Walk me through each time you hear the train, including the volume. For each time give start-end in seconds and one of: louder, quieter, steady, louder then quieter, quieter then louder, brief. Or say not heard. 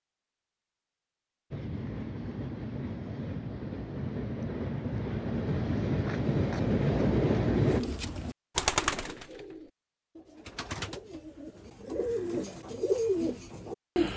1.5-7.8 louder.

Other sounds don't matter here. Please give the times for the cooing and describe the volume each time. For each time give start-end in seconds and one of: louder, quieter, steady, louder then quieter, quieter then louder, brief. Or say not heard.
7.5-14.1 quieter then louder.